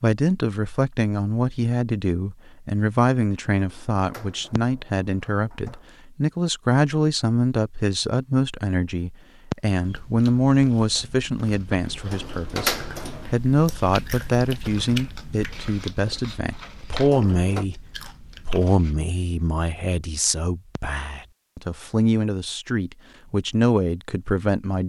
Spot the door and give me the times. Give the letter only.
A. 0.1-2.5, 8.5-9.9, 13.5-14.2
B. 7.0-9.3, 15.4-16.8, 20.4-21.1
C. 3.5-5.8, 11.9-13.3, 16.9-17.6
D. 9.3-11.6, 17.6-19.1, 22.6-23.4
C.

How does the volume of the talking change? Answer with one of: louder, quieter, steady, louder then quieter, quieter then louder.
steady.